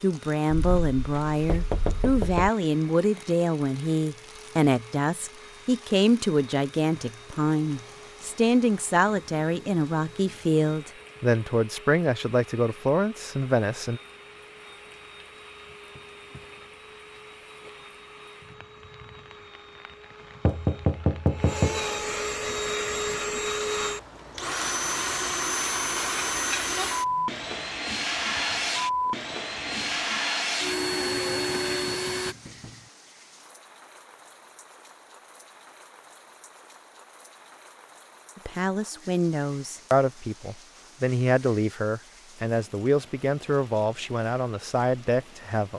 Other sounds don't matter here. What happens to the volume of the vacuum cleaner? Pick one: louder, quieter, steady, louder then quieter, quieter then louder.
louder.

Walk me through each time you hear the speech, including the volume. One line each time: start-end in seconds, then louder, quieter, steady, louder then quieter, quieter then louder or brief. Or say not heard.
0.0-14.0 steady
38.4-45.7 steady.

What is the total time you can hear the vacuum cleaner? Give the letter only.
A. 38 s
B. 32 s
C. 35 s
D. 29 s
B.